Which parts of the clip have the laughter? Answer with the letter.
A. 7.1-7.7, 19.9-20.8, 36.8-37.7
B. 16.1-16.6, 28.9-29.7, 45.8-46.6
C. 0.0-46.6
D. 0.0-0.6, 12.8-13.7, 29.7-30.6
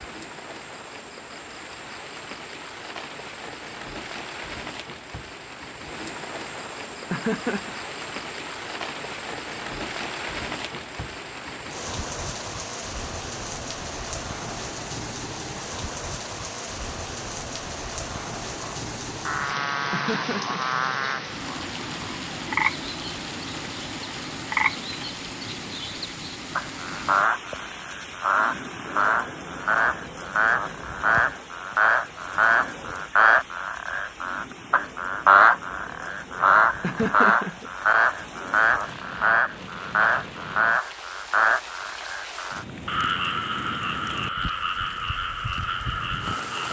A.